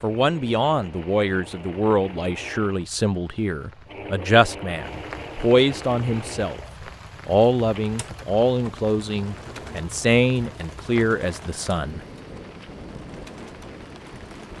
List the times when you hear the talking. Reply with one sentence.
The talking can be heard from 0.0 to 6.6 s and from 7.2 to 12.0 s.